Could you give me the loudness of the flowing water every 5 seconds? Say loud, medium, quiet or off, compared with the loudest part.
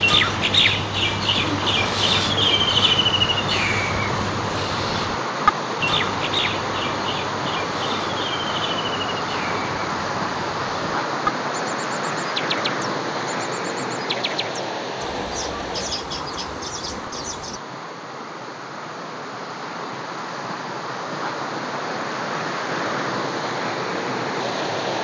loud, loud, loud, medium, loud.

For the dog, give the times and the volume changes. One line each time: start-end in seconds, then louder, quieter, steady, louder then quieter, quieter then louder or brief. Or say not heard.
not heard.